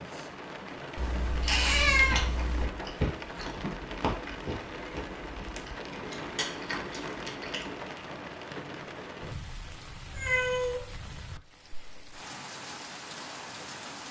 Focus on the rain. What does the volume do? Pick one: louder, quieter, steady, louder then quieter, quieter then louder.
steady.